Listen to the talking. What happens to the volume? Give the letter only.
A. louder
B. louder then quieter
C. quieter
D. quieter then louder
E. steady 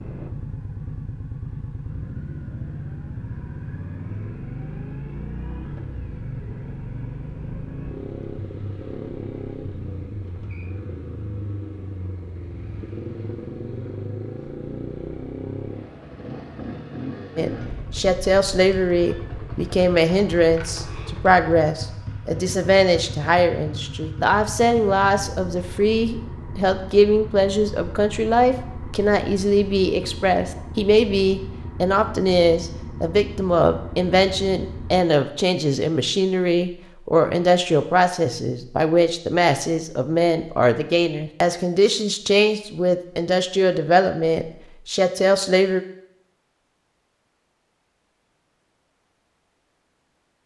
E.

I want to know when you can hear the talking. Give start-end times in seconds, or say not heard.
17.4-45.9.